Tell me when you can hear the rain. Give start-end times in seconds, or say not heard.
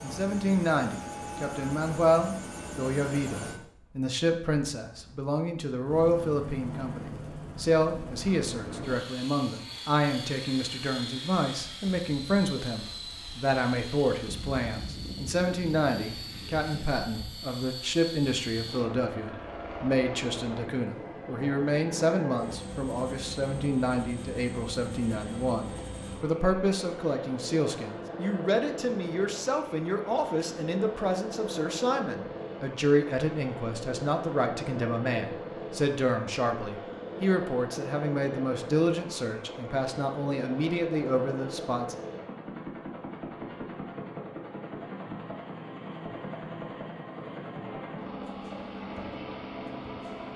not heard.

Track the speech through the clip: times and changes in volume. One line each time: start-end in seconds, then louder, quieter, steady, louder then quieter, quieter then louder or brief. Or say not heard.
0.0-42.0 steady.